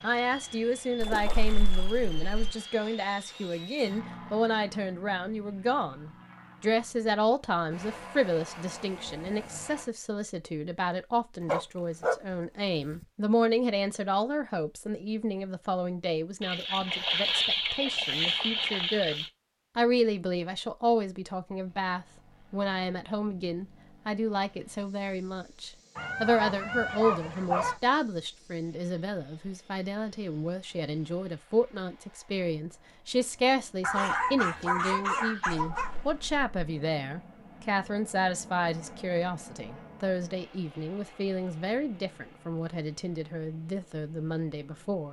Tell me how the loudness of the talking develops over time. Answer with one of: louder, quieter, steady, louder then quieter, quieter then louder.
steady.